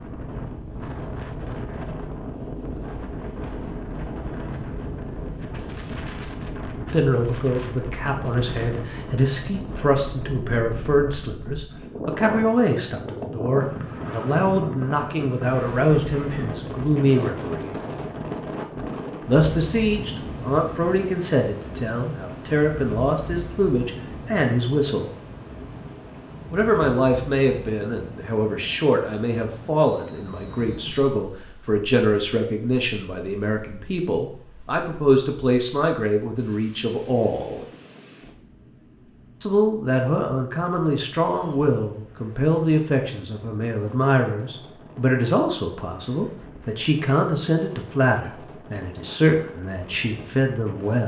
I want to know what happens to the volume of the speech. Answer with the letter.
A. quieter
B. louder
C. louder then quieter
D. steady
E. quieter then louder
D.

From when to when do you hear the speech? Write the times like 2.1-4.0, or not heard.
6.9-17.8, 19.2-25.1, 26.5-37.6, 39.4-51.0.